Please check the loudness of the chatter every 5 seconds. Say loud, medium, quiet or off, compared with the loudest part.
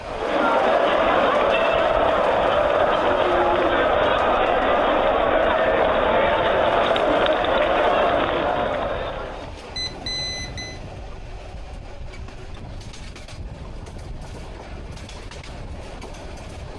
loud, loud, off, off.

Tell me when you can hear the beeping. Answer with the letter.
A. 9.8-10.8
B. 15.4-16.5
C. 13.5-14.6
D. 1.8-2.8
A.